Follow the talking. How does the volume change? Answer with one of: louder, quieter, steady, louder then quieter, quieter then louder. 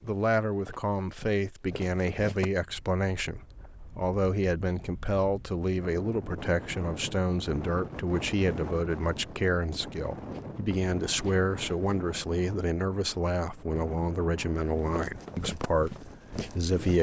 steady.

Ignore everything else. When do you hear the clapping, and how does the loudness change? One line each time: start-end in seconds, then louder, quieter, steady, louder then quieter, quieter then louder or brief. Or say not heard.
not heard.